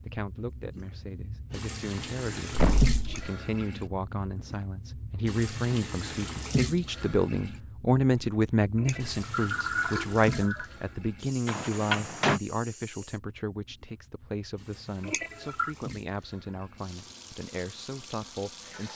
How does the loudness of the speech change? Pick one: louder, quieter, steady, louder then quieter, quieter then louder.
louder then quieter.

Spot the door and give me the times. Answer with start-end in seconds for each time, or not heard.
2.5-3.1, 11.4-12.4.